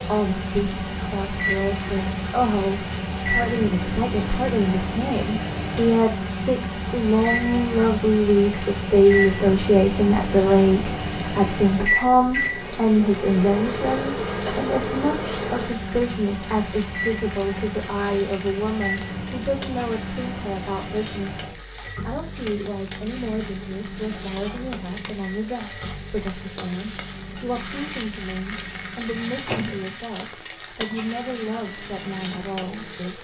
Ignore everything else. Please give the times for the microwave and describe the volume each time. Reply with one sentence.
You can hear the microwave from 0.0 to 33.1 s, getting quieter.